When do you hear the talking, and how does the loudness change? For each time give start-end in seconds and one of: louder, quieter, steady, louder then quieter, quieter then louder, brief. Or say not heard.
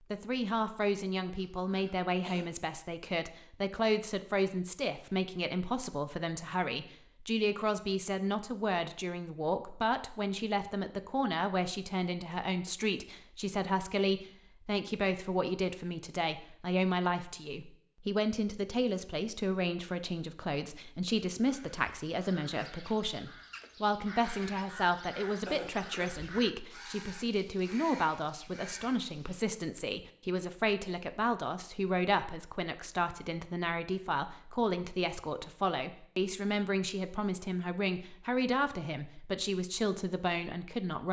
0.1-41.0 steady.